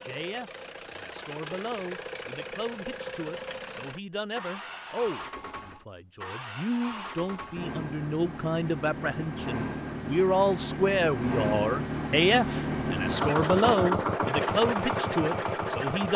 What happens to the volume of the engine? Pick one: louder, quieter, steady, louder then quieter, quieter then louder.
louder.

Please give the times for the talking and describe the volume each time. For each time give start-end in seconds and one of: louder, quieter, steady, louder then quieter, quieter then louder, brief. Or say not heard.
0.0-16.1 louder.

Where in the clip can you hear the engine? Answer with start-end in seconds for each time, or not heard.
0.0-16.1.